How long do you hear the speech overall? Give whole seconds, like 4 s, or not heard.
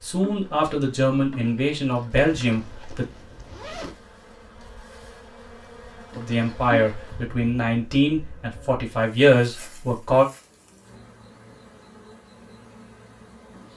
7 s.